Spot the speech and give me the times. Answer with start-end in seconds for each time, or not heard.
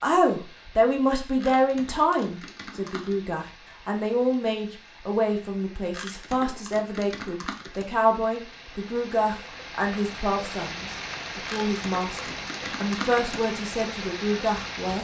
0.0-14.9.